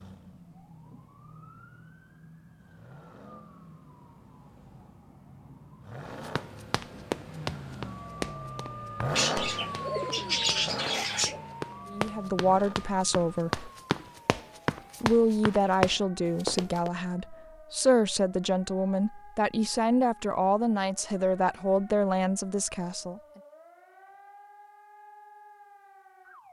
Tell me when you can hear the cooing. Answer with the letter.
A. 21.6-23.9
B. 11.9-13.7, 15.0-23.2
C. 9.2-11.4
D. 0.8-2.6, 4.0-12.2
C.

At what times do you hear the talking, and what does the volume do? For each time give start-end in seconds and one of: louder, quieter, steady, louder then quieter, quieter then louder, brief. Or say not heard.
11.9-13.7 brief
15.0-23.2 steady.